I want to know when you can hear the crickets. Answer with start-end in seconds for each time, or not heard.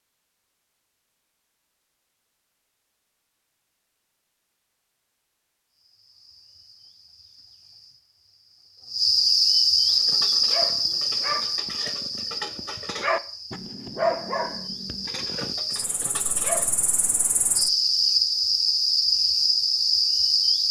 5.7-20.6.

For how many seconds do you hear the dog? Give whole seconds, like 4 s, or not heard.
7 s.